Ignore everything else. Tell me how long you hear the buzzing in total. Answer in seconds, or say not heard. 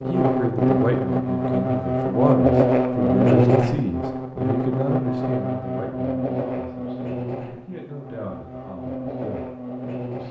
10 s.